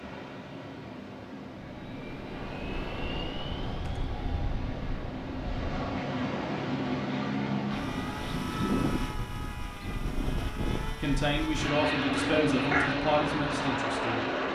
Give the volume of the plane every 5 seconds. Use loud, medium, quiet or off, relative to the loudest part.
medium, loud, loud.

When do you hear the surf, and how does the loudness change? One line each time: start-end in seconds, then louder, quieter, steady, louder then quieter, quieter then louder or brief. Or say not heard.
0.0-8.6 louder.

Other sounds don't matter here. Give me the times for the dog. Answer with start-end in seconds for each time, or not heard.
11.7-12.9.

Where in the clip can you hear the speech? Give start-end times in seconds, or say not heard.
11.0-14.5.